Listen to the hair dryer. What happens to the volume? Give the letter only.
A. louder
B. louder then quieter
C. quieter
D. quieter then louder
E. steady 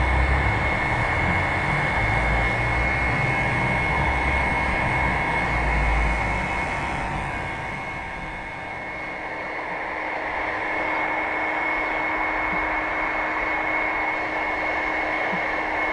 D.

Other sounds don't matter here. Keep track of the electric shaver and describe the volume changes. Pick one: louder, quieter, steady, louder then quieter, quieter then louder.
quieter.